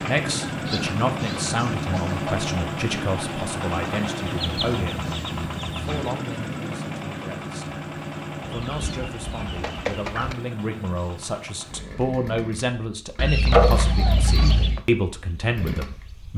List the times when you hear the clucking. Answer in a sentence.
You can hear the clucking from 0.5 to 2.4 s, from 4.2 to 6.1 s, from 8.4 to 10.3 s and from 13.2 to 14.8 s.